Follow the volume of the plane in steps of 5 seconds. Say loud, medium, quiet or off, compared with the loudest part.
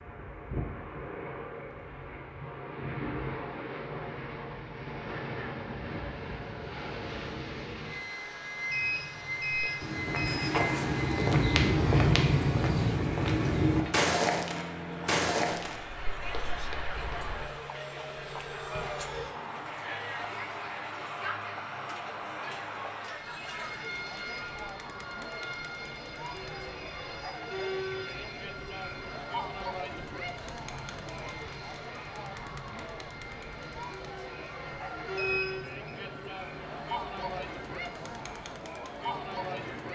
loud, loud, loud, loud, loud, medium, medium, medium.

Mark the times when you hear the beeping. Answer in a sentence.
You can hear the beeping from 8.7 to 10.6 s and from 35.1 to 36.0 s.